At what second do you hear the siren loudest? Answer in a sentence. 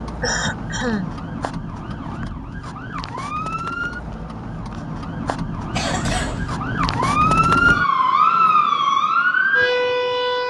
The loudest moment of the siren is at 8 seconds.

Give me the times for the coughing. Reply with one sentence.
The coughing can be heard from 0.2 to 1.1 s and from 5.7 to 6.5 s.